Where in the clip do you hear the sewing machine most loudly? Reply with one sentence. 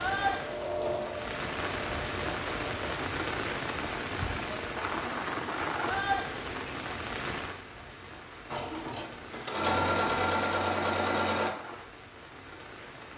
The loudest moment of the sewing machine is at 10 seconds.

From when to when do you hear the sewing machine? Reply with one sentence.
You can hear the sewing machine from 0.0 to 2.9 s and from 8.5 to 11.5 s.